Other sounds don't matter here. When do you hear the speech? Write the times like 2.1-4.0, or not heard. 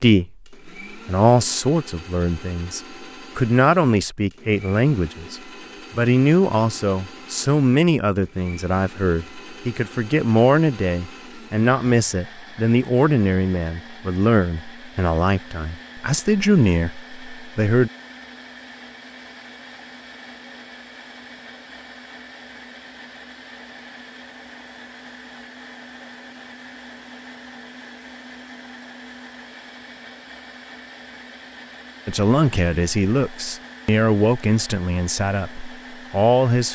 0.0-17.9, 32.0-36.6.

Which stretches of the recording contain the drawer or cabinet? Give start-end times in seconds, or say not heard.
not heard.